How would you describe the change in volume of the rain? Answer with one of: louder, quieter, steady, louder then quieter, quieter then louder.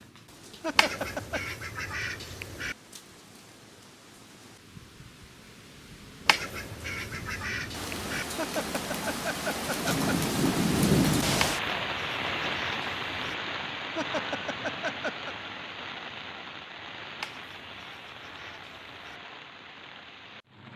louder then quieter.